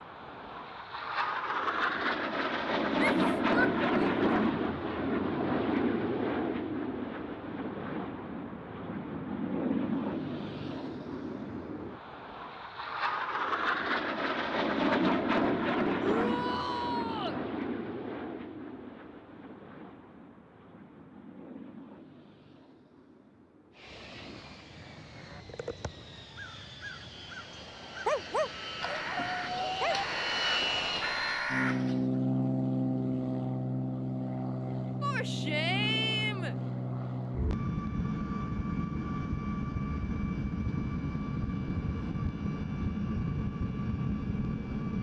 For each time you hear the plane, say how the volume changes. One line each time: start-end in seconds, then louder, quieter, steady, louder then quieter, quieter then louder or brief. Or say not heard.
0.0-44.9 quieter then louder.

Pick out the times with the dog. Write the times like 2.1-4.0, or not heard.
28.1-30.1.